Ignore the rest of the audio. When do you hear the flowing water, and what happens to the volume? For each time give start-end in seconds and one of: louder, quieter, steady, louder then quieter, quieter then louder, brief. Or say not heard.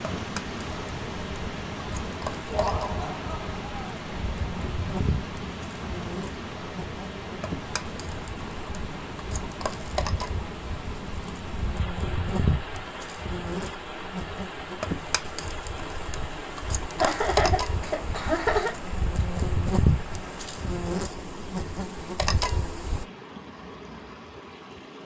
0.0-24.9 quieter.